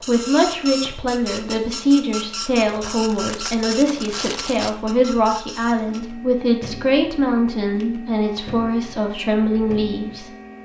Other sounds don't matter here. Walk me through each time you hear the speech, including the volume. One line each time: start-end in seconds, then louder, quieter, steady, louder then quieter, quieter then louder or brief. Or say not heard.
0.1-10.3 steady.